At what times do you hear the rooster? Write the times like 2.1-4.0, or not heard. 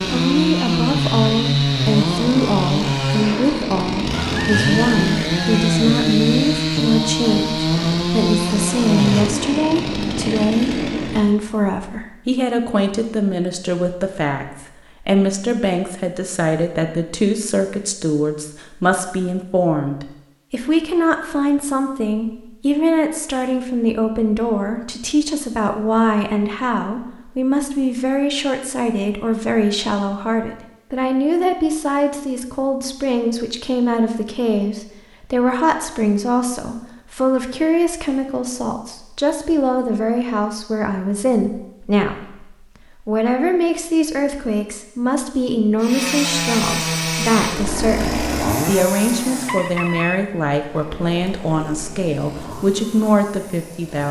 4.2-5.8, 49.5-50.2.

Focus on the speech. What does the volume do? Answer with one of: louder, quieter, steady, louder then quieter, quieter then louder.
steady.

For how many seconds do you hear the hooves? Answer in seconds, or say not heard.
not heard.